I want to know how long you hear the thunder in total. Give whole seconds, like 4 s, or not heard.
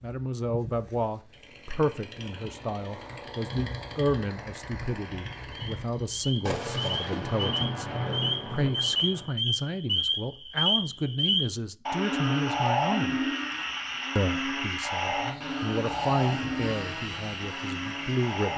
3 s.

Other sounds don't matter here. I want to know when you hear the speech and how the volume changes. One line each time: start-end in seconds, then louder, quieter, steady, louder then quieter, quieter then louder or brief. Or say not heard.
0.0-13.3 steady
14.2-18.5 louder then quieter.